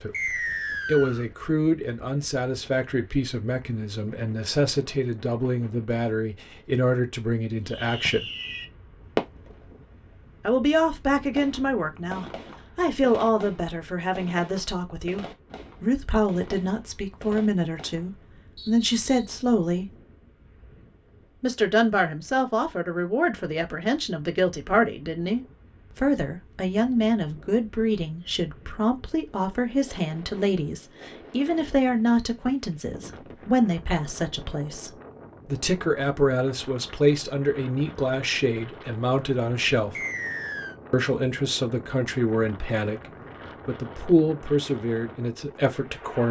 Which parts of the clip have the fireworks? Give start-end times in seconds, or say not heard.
7.7-9.7, 11.3-18.2.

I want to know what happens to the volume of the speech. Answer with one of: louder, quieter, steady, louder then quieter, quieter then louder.
steady.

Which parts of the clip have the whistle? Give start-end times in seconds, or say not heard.
0.1-1.2, 18.6-19.4, 40.0-40.8.